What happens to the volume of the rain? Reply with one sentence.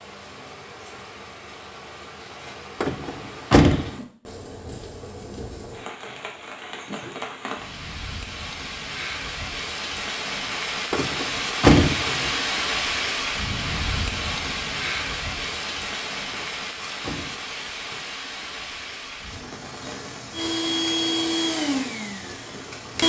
The loudness of the rain goes up, then down.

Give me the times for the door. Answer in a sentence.
You can hear the door from 2.8 to 3.9 s, from 10.9 to 12.4 s and from 16.3 to 17.8 s.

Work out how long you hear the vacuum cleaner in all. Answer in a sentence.
You can hear the vacuum cleaner for 3 seconds altogether.